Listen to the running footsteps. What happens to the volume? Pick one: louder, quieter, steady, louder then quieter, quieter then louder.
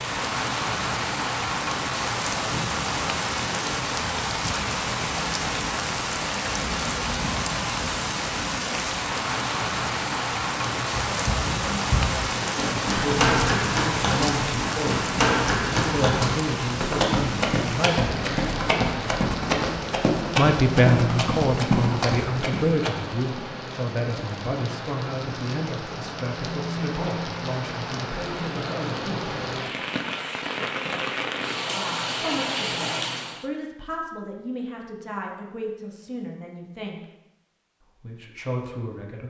steady.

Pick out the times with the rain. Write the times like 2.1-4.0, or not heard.
0.0-33.5.